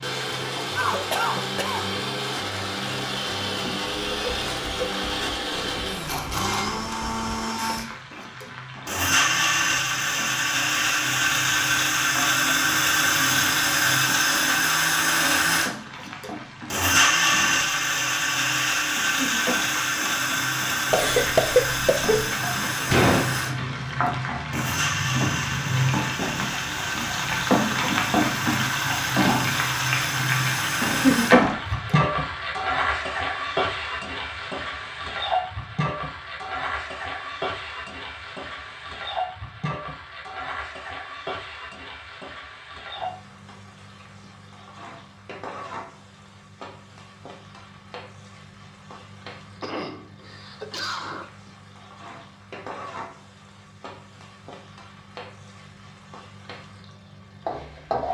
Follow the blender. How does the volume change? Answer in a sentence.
The loudness of the blender goes up, then down.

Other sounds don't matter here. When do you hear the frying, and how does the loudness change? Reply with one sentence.
The frying can be heard from 0.0 to 58.0 s, getting louder then quieter.